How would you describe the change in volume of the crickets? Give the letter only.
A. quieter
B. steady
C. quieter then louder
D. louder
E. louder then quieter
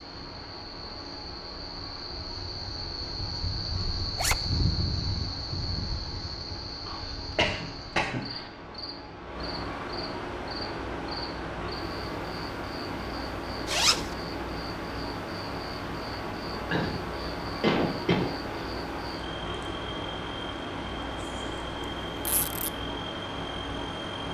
A.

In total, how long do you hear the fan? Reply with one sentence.
The fan can be heard for 24 seconds in total.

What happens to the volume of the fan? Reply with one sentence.
The volume of the fan goes up.